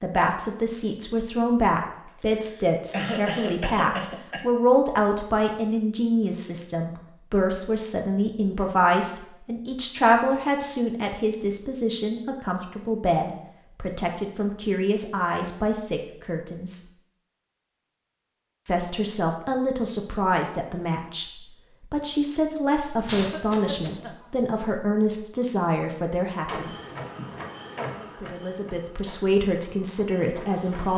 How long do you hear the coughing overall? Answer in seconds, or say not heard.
3 s.